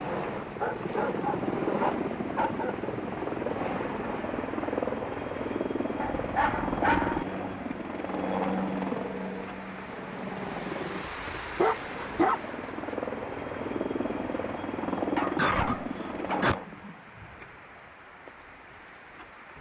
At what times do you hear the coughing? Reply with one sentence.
The coughing can be heard from 15.3 to 16.6 s.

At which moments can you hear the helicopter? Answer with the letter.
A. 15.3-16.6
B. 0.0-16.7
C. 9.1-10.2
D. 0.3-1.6
B.